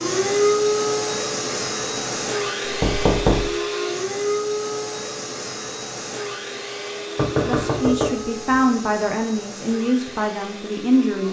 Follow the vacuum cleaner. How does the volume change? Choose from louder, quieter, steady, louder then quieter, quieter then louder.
quieter.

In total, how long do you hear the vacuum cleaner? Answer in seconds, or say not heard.
11 s.